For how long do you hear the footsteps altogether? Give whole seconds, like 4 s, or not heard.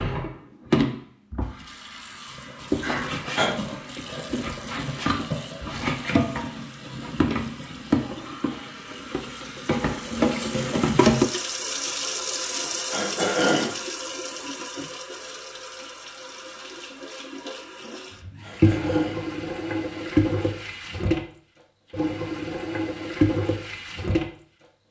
not heard.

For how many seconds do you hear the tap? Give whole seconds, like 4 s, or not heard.
25 s.